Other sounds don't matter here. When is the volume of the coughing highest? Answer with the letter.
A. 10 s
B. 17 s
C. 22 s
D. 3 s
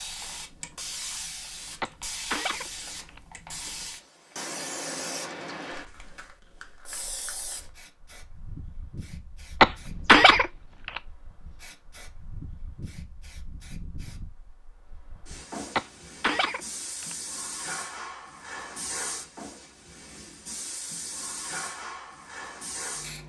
A.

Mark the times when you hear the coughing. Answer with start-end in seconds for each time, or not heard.
1.8-3.2, 9.6-11.0, 15.8-17.1.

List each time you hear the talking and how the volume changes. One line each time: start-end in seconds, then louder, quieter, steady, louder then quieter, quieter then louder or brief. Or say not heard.
not heard.